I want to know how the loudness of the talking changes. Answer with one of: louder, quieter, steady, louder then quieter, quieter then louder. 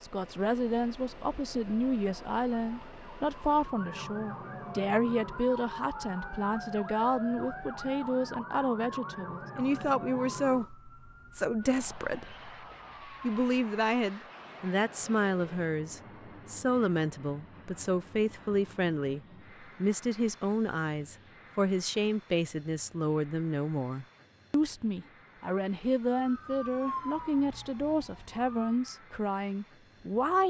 steady.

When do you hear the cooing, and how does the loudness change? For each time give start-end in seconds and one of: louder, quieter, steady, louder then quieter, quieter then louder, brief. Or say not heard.
not heard.